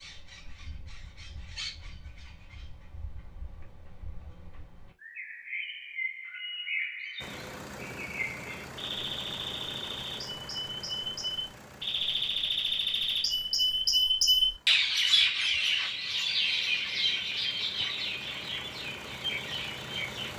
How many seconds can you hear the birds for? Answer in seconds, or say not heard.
20 s.